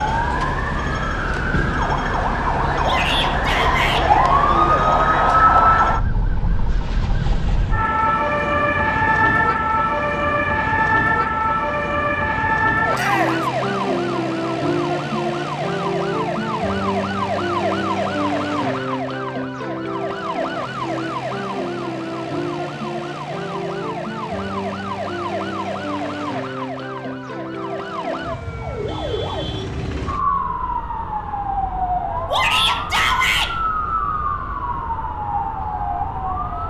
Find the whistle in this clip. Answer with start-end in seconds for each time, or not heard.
not heard.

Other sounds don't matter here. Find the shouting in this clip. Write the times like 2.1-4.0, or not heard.
2.8-4.0, 12.9-13.4, 32.3-33.5.